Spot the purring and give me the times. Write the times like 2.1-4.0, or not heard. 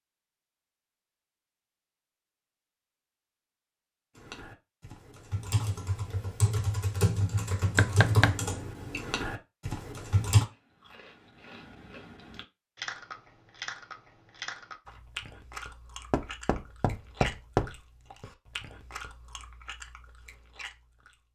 not heard.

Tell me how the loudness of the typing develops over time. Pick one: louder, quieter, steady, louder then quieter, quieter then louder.
louder then quieter.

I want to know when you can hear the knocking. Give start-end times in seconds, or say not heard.
7.8-8.4, 16.1-17.8.